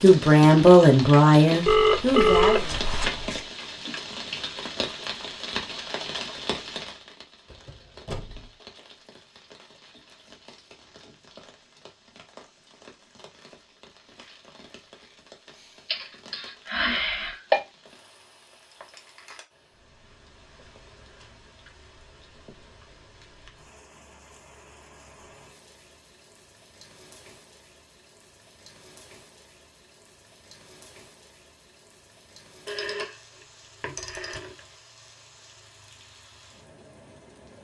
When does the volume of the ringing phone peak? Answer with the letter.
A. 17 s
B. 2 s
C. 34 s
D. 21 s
B.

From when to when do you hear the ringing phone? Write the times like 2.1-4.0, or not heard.
1.6-3.5, 15.8-17.6, 32.6-33.1, 33.8-34.6.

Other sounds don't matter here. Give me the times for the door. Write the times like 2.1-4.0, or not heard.
7.5-8.4.